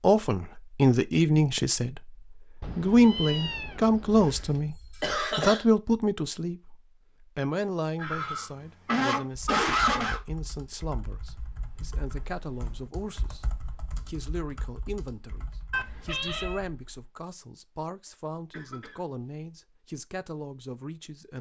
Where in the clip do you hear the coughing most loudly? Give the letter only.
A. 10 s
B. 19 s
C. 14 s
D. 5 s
A.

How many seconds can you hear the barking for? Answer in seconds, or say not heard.
not heard.